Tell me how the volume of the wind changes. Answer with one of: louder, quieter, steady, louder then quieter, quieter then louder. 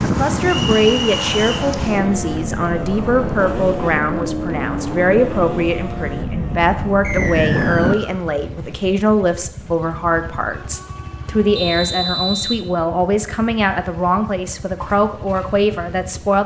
quieter then louder.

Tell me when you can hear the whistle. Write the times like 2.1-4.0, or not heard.
0.5-1.6, 7.0-8.2, 11.6-12.6.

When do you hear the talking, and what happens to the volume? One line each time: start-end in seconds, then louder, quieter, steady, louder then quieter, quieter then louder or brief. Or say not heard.
0.0-16.4 steady.